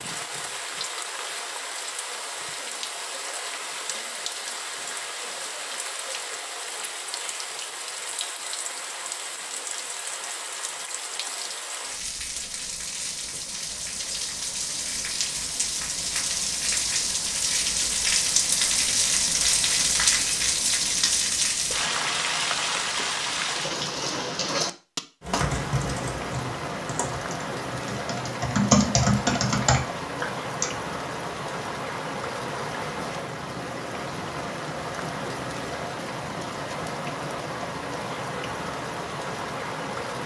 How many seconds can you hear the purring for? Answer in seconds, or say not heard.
not heard.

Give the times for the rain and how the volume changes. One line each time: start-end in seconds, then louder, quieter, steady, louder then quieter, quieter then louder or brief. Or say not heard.
0.0-40.2 louder then quieter.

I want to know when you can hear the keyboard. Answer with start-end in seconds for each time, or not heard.
25.2-30.6.